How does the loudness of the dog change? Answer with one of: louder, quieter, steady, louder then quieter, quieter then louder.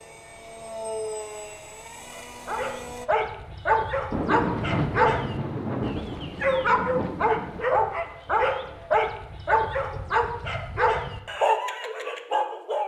steady.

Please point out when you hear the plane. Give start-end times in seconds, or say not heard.
0.0-3.1.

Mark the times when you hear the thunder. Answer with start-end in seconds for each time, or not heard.
4.1-7.7.